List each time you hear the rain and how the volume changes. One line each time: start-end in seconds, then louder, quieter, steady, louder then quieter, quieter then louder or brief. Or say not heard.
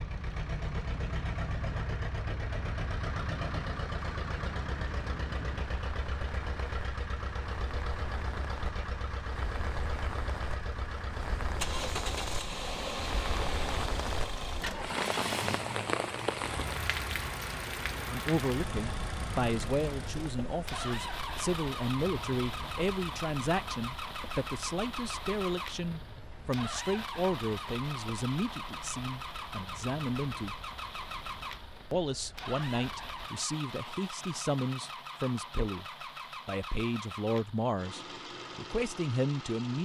0.0-33.5 louder then quieter.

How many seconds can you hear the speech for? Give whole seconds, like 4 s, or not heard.
20 s.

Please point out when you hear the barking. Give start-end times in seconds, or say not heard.
not heard.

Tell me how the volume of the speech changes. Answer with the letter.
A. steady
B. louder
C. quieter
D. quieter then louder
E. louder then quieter
A.